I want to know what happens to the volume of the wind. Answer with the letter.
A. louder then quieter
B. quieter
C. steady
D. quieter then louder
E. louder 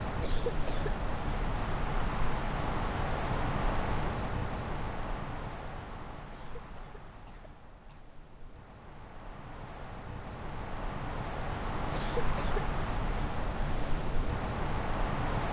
D.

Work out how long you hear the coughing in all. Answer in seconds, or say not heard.
3 s.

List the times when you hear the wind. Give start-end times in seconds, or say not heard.
0.0-15.4.